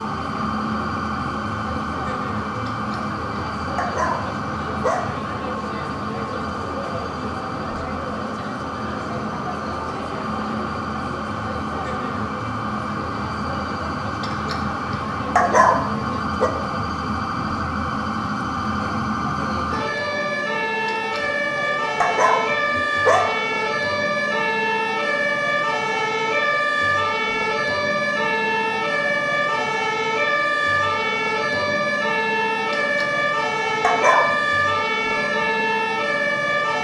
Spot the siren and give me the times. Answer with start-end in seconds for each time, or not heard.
0.0-36.7.